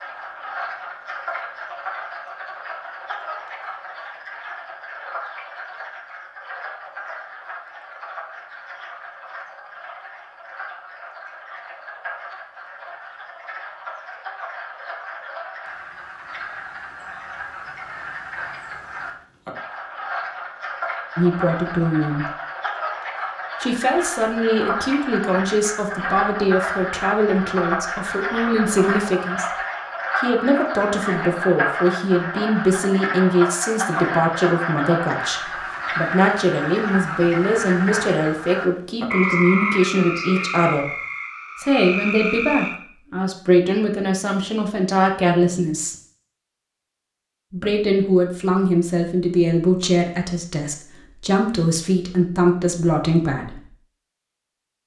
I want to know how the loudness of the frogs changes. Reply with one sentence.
The loudness of the frogs goes up.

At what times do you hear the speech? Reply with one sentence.
The speech can be heard from 21.1 to 22.2 s, from 23.6 to 29.4 s, from 30.1 to 40.9 s, from 41.6 to 46.0 s and from 47.5 to 53.6 s.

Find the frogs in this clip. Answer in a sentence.
You can hear the frogs from 0.0 to 42.8 s.